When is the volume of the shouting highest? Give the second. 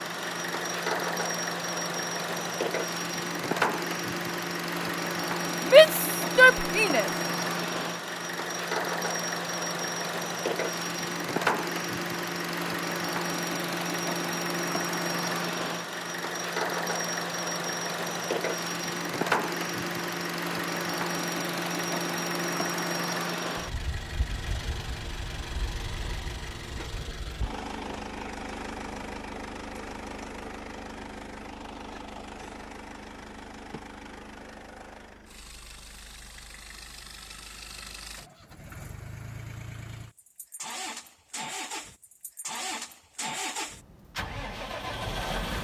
6 s.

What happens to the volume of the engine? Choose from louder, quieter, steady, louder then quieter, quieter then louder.
quieter.